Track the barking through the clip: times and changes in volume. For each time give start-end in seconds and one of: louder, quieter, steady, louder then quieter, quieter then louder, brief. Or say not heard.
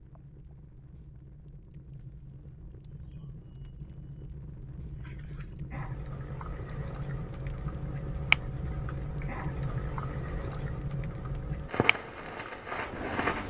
not heard.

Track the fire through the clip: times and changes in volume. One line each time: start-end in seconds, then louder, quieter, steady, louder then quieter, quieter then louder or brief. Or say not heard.
0.0-13.4 louder.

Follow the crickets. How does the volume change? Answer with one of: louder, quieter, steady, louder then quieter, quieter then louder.
louder then quieter.